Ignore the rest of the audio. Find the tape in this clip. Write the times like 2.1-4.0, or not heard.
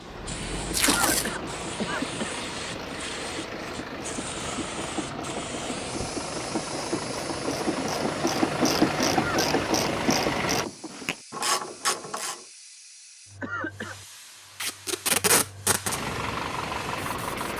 0.7-1.3, 14.6-16.0.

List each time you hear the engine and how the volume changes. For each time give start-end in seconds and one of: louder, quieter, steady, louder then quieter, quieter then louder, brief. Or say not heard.
0.0-10.7 louder
15.8-17.5 brief.